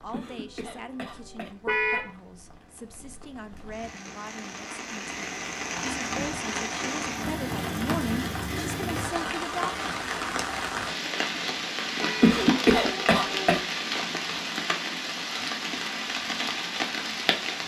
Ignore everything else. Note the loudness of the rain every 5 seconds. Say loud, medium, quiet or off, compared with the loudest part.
quiet, loud, loud, loud.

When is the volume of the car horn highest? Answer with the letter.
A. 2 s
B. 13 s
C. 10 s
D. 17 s
A.